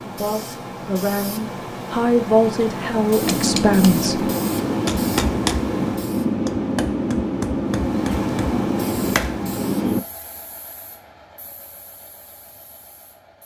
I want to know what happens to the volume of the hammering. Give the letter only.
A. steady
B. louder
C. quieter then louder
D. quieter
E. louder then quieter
A.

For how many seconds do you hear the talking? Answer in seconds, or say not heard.
4 s.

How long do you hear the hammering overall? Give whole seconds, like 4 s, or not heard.
7 s.